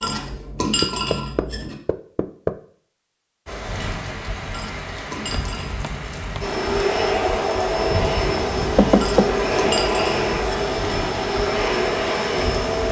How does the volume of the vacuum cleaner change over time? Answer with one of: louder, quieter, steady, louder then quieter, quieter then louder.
steady.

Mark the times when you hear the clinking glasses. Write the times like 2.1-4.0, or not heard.
0.0-1.8, 4.5-5.8, 8.9-10.7.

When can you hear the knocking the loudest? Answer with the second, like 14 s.
9 s.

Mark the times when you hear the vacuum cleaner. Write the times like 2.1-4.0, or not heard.
6.4-12.8.